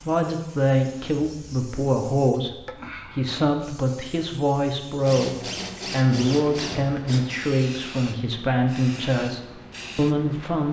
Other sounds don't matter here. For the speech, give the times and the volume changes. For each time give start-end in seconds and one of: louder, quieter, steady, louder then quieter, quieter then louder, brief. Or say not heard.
0.0-2.5 brief
3.1-5.3 brief
5.9-10.6 steady.